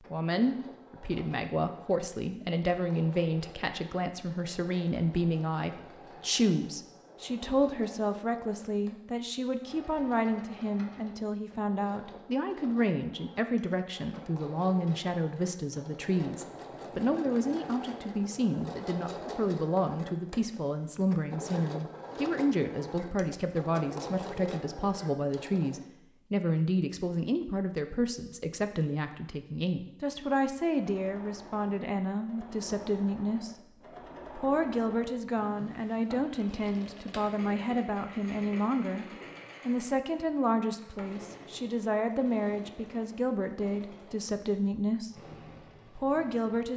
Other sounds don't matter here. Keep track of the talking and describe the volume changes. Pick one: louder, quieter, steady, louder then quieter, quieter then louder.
steady.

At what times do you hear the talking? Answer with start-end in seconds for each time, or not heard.
0.0-46.7.